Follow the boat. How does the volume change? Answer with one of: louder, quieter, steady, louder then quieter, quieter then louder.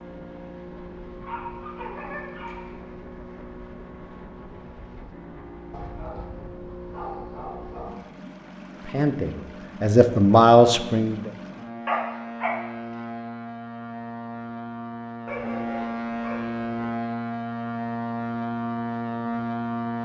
louder.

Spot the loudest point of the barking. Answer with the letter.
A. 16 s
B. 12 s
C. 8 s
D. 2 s
B.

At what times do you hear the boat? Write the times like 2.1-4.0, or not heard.
0.0-20.0.